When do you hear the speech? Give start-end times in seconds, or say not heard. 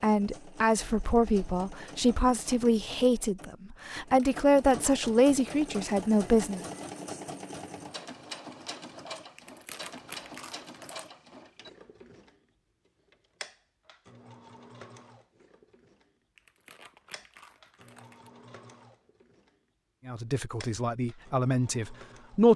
0.0-6.6, 20.1-22.5.